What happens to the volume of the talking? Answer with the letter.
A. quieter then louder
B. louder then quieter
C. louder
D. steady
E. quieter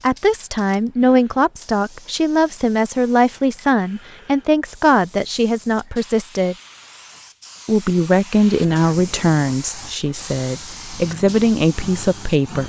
D.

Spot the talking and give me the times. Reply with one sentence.
The talking can be heard from 0.0 to 6.5 s and from 7.7 to 12.6 s.